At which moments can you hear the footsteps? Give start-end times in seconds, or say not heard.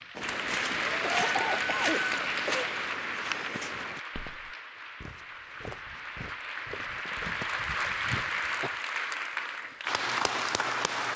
0.1-8.3.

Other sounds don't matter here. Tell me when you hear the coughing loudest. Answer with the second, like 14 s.
1 s.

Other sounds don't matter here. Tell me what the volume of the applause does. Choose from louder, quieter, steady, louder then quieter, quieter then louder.
quieter then louder.